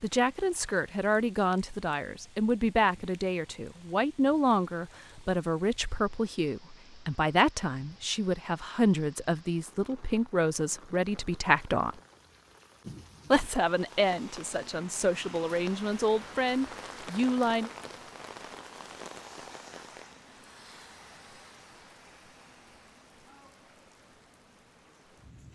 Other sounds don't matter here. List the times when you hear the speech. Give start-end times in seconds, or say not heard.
0.0-12.0, 13.3-17.7.